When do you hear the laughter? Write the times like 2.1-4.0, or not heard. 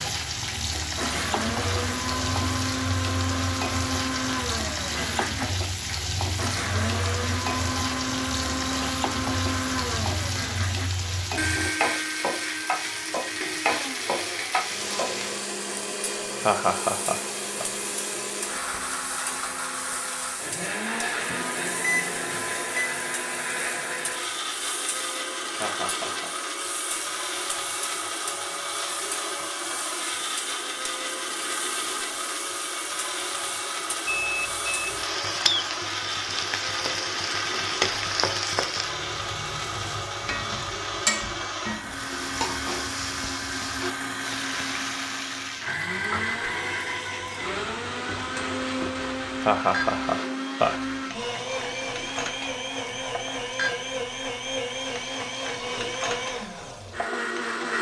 16.4-17.6, 25.6-26.3, 49.4-50.8.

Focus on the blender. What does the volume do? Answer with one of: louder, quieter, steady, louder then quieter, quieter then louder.
steady.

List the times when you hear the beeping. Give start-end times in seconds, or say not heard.
21.2-22.9, 34.0-35.0.